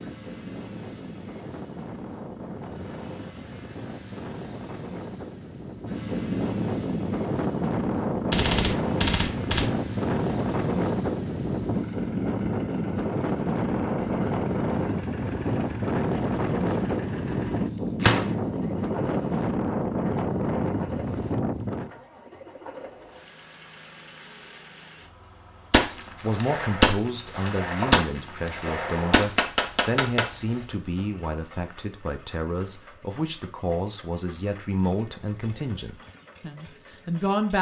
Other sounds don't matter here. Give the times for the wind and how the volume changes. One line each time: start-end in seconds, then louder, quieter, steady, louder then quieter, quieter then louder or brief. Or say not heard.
0.0-21.9 louder.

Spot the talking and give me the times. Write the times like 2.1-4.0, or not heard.
25.8-37.5.